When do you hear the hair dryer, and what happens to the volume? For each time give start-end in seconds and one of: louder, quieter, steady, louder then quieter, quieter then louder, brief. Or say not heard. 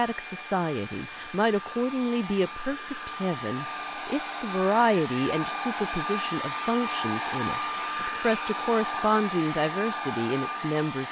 0.0-11.0 louder.